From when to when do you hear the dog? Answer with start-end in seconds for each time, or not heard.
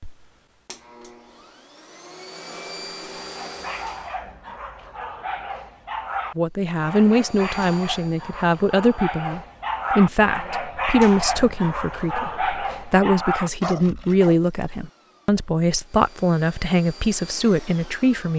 3.2-14.4.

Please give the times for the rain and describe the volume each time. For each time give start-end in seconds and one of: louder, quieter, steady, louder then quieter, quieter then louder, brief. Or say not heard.
not heard.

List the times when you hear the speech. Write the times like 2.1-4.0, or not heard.
6.3-18.3.